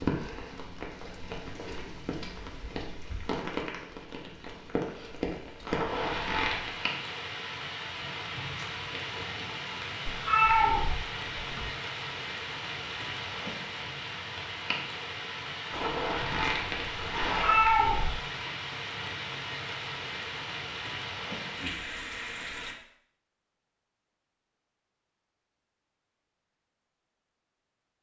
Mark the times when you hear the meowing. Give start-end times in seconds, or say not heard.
10.1-11.7, 17.3-18.1.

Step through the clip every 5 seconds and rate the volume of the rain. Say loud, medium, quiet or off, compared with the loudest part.
loud, loud, loud, loud, loud, off.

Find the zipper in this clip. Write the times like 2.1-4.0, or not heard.
5.7-6.8, 15.7-17.6.